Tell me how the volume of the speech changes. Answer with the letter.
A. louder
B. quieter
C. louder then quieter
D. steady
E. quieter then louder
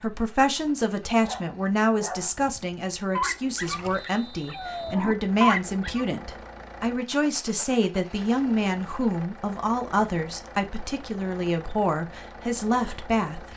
D.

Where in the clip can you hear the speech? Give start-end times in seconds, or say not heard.
0.0-13.5.